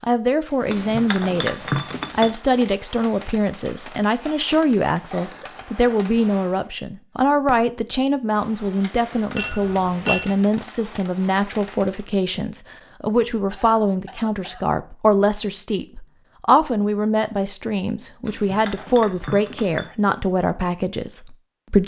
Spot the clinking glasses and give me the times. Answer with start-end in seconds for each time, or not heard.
0.7-2.4, 9.3-10.3, 18.2-19.9.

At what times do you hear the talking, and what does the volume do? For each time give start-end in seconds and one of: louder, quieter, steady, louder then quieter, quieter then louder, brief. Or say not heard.
0.0-21.8 steady.